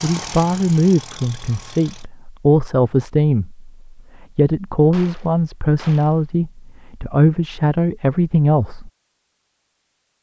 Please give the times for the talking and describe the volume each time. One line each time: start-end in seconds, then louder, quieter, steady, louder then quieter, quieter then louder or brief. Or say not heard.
0.0-8.9 steady.